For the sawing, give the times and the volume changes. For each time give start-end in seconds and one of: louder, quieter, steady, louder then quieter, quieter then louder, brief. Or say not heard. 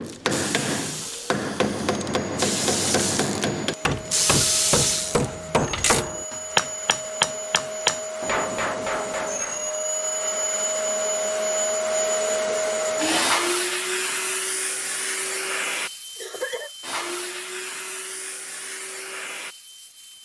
not heard.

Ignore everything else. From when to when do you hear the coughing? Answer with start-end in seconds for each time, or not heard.
16.1-16.7.